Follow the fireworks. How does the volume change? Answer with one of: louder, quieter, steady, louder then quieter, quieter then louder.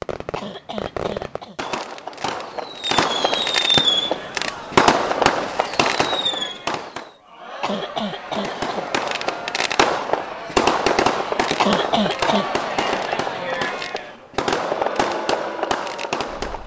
louder then quieter.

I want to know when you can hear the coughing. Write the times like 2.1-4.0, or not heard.
0.3-1.6, 7.6-8.8, 11.6-12.5.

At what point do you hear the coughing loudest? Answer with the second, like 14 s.
12 s.